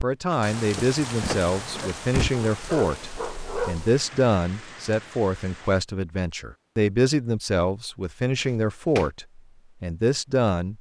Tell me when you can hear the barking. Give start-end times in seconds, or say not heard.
1.7-3.9.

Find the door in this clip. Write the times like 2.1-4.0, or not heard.
0.3-2.3, 8.4-9.1.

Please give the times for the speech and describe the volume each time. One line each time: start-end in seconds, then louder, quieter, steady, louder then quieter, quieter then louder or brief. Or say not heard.
0.0-10.7 steady.